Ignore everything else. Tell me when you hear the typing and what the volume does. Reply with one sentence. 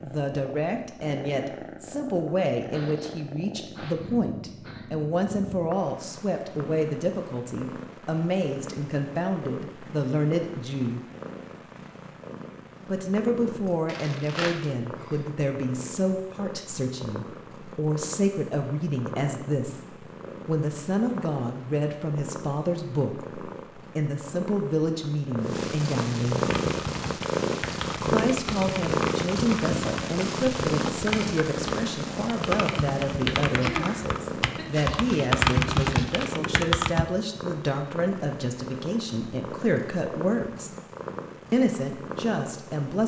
You can hear the typing from 26.4 to 37.0 s, getting louder.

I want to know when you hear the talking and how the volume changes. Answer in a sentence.
You can hear the talking from 0.0 to 11.0 s, at a steady volume; from 12.8 to 26.5 s, at a steady volume; from 28.0 to 40.7 s, at a steady volume; and briefly from 41.5 to 43.0 s.